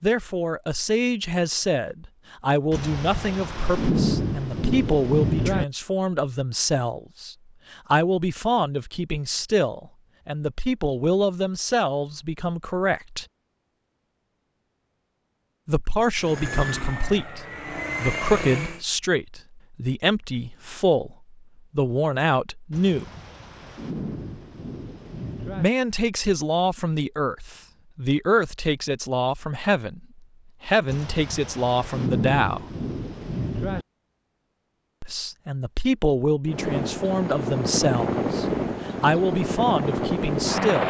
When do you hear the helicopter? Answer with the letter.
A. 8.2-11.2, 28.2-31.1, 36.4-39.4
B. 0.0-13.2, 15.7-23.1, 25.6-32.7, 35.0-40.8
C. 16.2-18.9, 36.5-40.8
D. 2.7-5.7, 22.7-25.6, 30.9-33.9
C.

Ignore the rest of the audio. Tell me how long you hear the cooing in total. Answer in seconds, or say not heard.
not heard.